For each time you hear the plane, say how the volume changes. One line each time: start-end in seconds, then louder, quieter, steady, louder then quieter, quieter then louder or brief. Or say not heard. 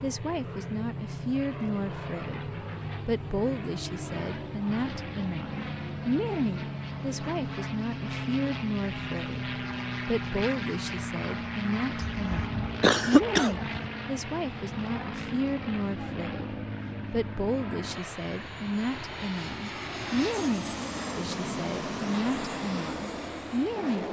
0.0-24.0 steady.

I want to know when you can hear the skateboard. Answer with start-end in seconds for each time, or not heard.
not heard.